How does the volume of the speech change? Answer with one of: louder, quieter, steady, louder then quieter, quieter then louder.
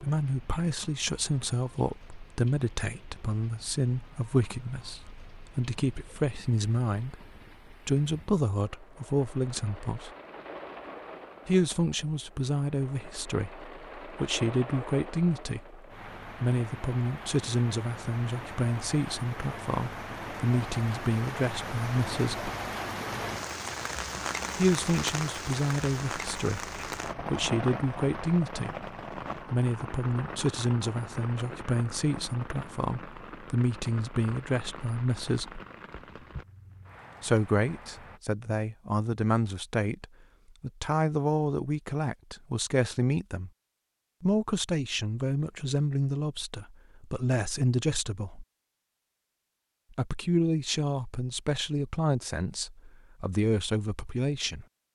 steady.